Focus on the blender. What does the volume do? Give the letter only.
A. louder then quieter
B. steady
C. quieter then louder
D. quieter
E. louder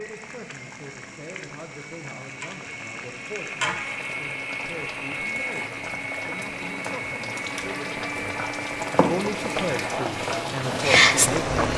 E.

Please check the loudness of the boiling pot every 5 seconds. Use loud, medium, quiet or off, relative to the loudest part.
quiet, medium, loud.